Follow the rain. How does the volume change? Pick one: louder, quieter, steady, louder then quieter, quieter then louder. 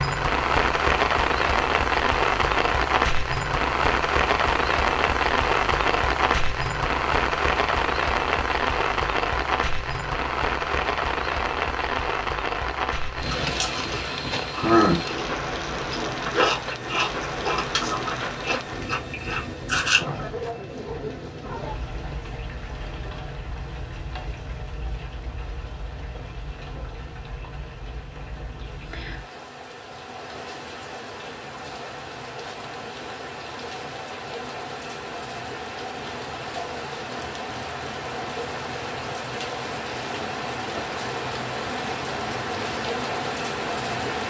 quieter then louder.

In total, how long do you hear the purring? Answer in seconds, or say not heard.
not heard.